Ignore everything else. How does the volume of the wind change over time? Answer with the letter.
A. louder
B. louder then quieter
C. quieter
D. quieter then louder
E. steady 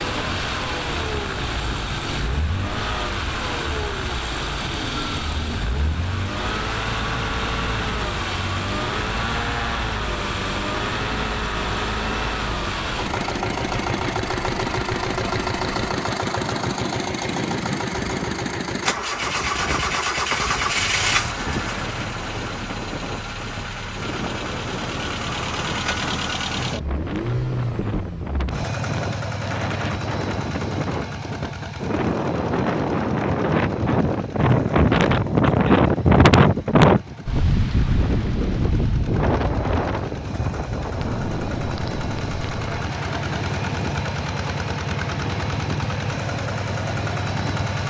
B.